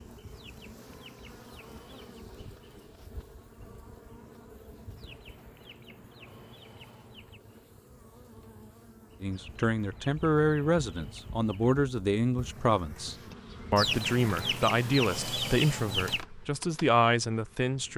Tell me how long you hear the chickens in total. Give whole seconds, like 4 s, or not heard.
9 s.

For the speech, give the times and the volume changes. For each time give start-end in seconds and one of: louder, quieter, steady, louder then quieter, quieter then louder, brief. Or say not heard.
9.2-17.9 steady.